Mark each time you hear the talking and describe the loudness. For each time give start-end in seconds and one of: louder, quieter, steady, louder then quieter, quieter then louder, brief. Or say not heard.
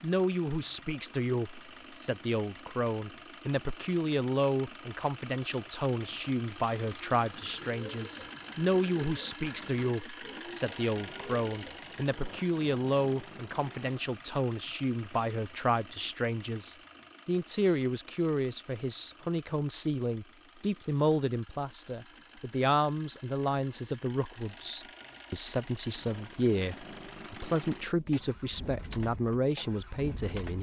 0.0-30.5 steady.